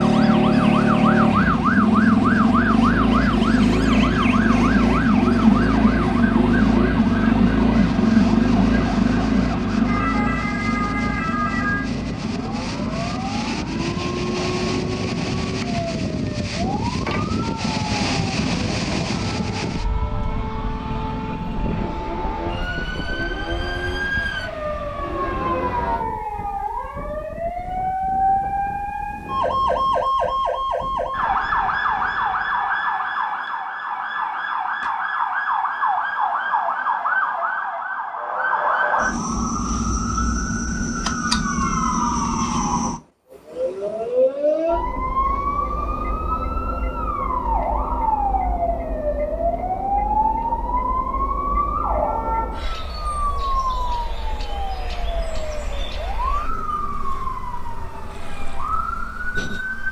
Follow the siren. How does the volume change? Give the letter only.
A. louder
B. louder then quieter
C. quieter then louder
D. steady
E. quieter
C.